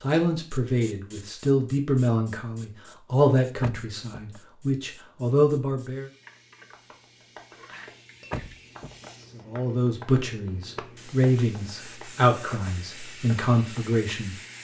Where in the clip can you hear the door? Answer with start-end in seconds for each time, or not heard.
3.6-4.4, 8.3-9.1.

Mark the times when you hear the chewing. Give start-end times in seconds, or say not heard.
not heard.